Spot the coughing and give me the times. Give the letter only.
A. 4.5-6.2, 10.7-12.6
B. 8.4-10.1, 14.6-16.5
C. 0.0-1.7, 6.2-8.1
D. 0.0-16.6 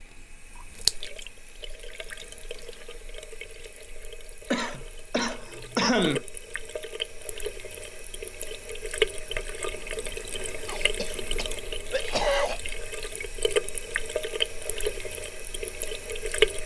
A.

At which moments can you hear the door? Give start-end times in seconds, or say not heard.
not heard.